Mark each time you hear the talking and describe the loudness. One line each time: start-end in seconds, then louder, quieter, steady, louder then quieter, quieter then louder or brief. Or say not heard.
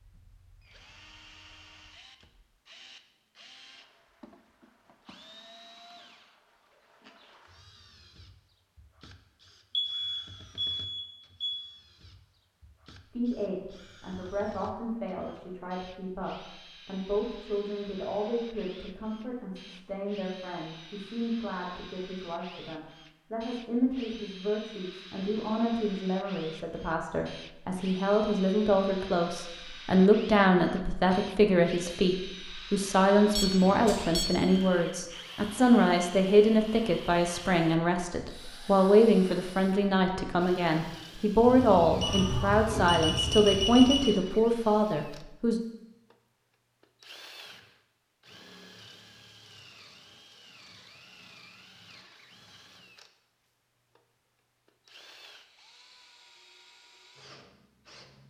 13.1-45.6 louder.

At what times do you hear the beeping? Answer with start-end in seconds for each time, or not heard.
9.7-11.6, 33.3-34.6, 41.4-44.1.